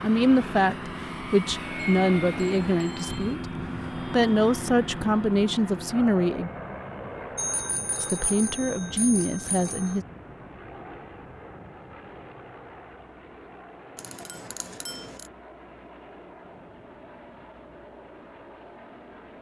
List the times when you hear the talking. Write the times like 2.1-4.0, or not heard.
0.0-6.5, 8.0-10.1.